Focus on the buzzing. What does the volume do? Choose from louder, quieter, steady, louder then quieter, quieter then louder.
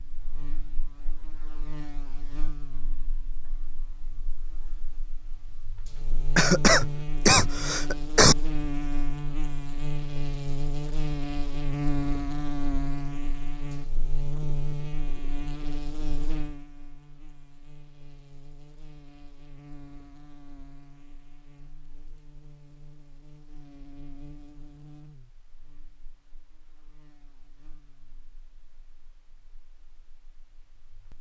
louder then quieter.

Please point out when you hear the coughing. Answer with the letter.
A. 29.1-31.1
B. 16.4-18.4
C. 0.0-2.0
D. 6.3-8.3
D.